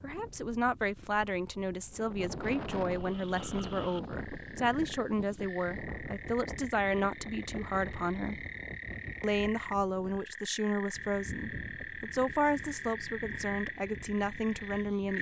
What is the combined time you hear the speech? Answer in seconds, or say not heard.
14 s.